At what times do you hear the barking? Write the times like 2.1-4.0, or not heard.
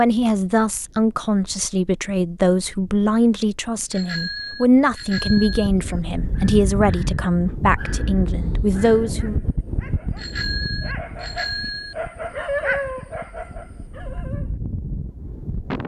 6.3-14.6.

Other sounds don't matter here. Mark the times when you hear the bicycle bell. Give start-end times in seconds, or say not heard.
3.9-5.7, 10.2-11.9.